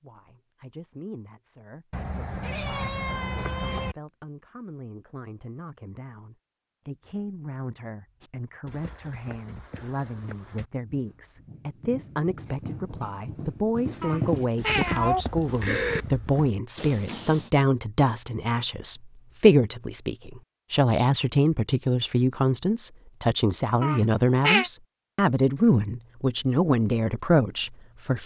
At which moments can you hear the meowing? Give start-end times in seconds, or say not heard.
1.9-4.0, 14.0-16.1, 23.8-24.7.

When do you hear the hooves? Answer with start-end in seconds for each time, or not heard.
8.2-17.5.